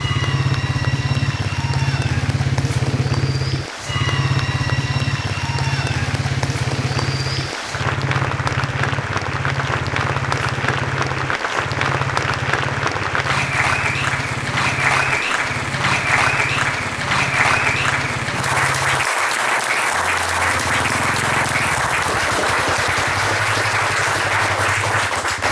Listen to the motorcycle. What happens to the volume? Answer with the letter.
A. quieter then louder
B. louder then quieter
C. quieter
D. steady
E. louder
C.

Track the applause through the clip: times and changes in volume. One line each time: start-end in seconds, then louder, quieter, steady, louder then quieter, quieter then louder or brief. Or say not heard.
0.0-25.4 louder.